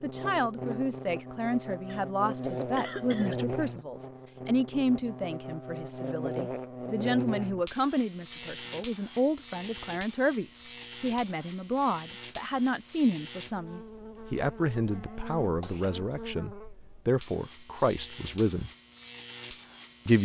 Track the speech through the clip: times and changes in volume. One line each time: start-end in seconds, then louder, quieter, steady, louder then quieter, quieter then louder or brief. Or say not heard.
0.0-18.7 steady.